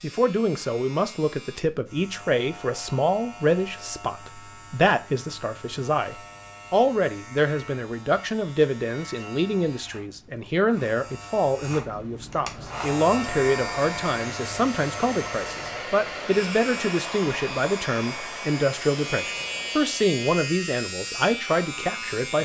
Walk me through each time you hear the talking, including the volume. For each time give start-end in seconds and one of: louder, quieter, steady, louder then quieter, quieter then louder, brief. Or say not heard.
0.0-22.4 steady.